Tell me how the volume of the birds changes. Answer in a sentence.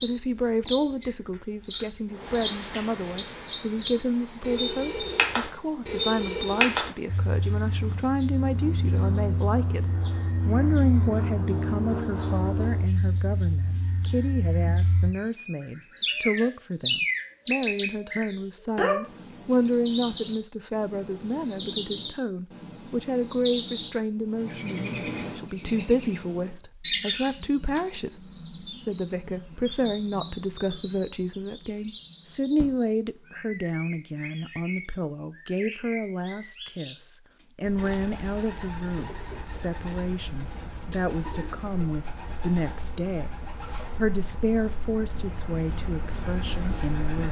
The volume of the birds goes down.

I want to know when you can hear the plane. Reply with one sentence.
The plane can be heard from 2.0 to 12.9 s.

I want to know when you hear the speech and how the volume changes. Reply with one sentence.
The speech can be heard from 0.0 to 47.2 s, at a steady volume.